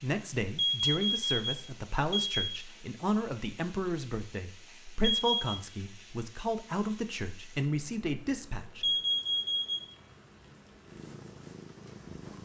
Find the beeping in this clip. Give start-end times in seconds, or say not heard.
0.6-2.6, 5.0-5.5, 8.8-9.9.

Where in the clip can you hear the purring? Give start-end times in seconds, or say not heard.
10.8-12.4.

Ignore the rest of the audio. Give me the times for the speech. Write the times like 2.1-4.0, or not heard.
0.0-8.9.